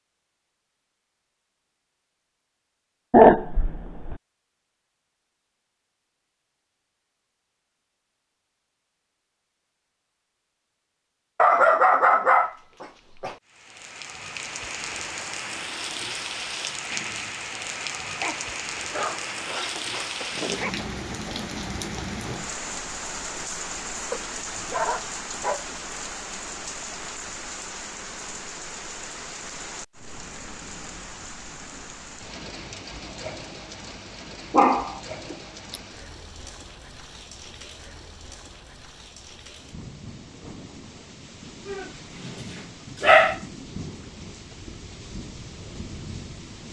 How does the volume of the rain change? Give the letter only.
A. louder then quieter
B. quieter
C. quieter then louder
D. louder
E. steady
B.